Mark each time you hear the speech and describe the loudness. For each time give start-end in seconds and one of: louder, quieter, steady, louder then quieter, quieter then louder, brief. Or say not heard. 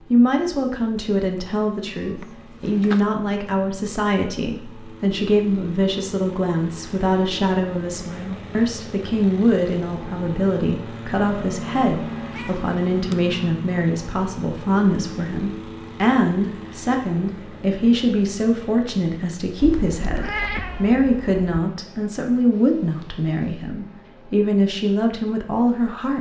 0.1-26.1 steady.